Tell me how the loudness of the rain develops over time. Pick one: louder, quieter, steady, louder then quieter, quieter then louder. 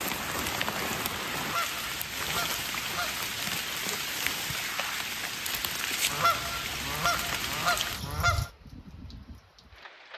quieter.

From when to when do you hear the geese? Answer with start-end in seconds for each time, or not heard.
1.4-3.5, 6.1-8.5.